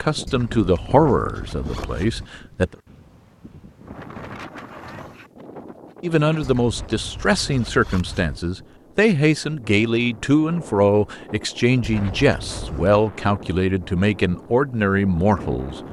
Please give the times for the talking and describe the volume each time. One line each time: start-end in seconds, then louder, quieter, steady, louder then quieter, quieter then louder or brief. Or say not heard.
0.0-2.8 brief
6.0-15.8 steady.